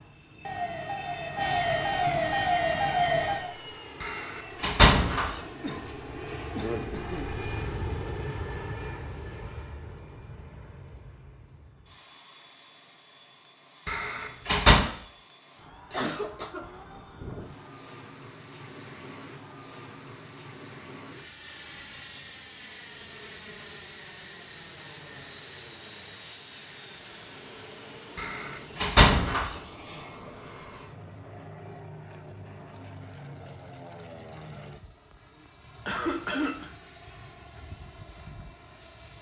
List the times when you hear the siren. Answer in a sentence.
You can hear the siren from 0.0 to 3.5 s.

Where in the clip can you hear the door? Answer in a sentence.
You can hear the door from 4.0 to 5.4 s, from 13.8 to 14.8 s and from 28.1 to 29.6 s.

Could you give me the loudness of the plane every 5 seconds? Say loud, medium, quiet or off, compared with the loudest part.
medium, loud, medium, medium, medium, medium, medium, medium.